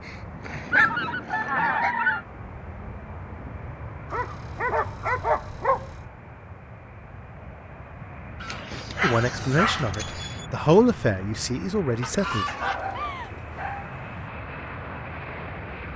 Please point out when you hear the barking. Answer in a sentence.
The barking can be heard from 0.0 to 1.9 s, from 4.1 to 5.9 s, from 8.4 to 10.4 s and from 12.4 to 14.3 s.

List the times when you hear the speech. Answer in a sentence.
The speech can be heard from 9.0 to 12.4 s.